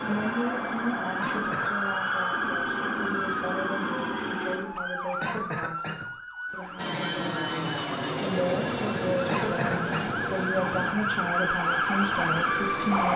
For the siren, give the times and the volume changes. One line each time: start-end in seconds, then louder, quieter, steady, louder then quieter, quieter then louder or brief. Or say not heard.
0.0-13.1 quieter then louder.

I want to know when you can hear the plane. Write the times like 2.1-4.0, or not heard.
0.0-4.6, 6.8-10.9.